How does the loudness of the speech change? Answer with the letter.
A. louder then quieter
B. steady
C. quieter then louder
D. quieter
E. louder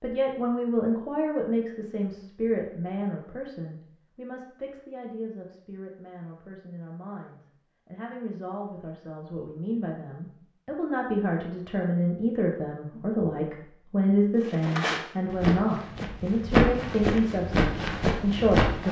C.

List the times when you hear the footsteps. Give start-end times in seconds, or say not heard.
14.4-18.8.